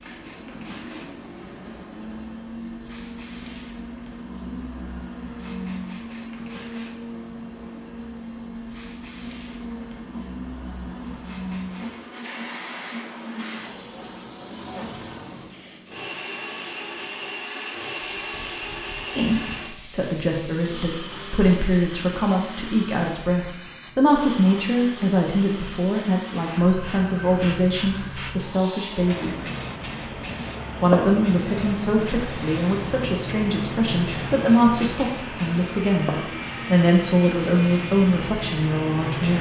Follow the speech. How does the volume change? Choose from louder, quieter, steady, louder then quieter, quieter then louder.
steady.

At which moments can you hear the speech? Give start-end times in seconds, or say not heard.
19.1-29.4, 30.8-39.3.